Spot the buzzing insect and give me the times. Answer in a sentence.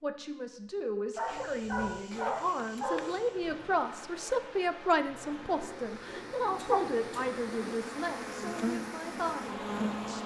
You can hear the buzzing insect from 5.2 to 10.2 s.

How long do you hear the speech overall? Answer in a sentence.
The speech can be heard for 10 seconds in total.